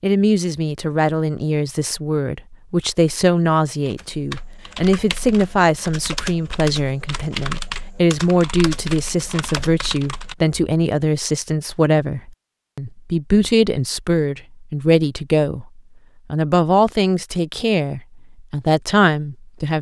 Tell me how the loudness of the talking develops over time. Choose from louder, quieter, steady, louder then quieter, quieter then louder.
steady.